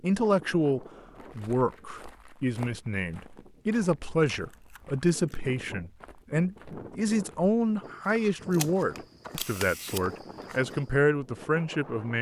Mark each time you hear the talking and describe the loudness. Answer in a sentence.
The talking can be heard from 0.0 to 12.1 s, at a steady volume.